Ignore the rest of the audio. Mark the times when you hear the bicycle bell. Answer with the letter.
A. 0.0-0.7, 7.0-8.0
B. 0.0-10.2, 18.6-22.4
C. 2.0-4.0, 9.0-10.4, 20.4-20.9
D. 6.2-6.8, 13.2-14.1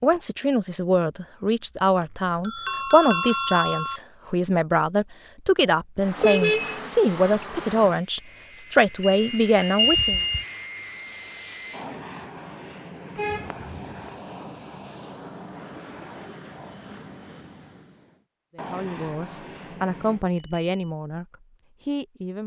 C.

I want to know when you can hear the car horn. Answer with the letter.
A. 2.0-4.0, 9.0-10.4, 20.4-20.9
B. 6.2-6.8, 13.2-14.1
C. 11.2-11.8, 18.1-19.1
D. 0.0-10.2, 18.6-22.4
B.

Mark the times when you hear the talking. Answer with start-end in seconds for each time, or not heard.
0.0-10.2, 18.6-22.4.